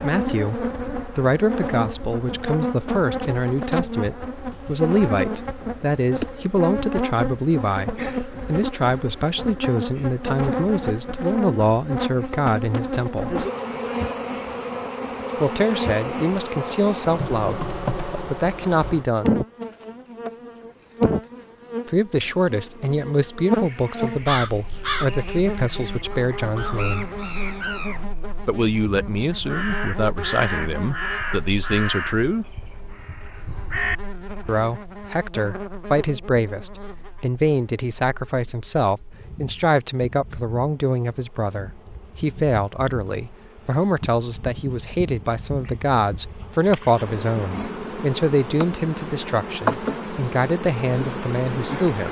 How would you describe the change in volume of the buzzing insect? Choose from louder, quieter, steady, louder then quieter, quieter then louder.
quieter then louder.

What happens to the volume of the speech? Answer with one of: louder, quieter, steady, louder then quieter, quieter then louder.
steady.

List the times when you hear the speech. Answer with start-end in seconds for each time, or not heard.
0.0-13.3, 15.4-19.4, 21.9-27.1, 28.4-32.5, 34.5-52.0.